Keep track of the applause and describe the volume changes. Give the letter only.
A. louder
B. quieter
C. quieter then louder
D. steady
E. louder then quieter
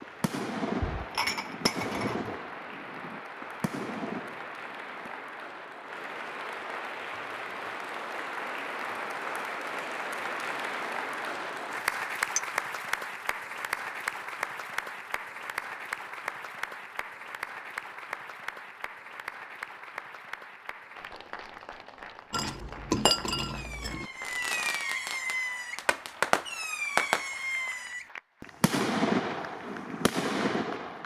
E.